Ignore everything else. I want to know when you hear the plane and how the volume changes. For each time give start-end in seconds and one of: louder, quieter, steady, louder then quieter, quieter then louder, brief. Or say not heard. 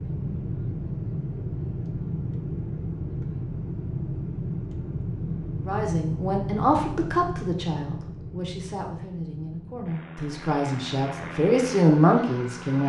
0.0-12.8 quieter.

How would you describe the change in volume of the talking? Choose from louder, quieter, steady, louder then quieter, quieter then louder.
quieter then louder.